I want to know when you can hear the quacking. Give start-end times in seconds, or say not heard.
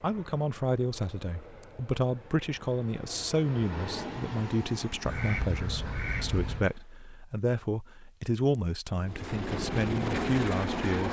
5.0-6.7.